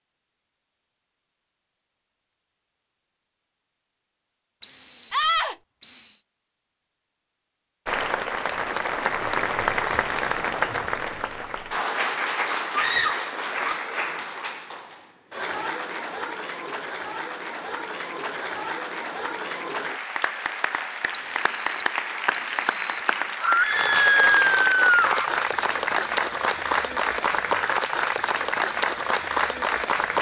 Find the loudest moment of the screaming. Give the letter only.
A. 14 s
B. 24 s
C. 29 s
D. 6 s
B.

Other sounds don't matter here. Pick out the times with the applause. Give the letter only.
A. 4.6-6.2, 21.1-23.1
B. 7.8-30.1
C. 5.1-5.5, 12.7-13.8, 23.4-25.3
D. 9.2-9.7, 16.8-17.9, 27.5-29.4
B.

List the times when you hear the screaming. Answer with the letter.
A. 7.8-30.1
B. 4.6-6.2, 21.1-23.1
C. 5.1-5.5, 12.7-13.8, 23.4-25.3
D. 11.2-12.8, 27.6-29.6
C.